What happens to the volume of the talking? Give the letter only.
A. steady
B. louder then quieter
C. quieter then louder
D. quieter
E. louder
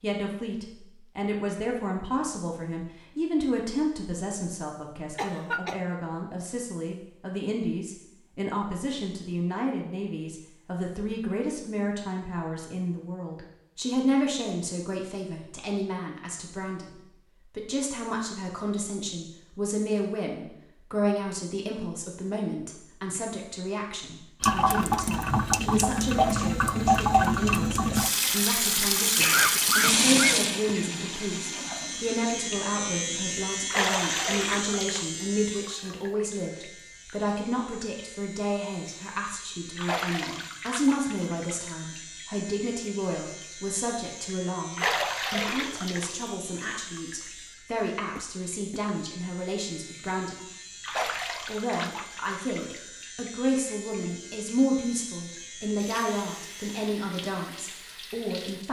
A.